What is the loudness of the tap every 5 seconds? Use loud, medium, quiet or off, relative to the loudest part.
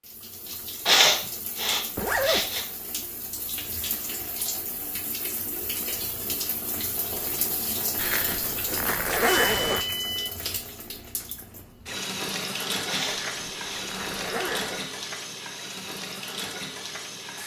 medium, loud, loud, loud.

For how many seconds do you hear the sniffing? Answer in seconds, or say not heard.
3 s.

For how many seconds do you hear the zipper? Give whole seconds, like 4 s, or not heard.
4 s.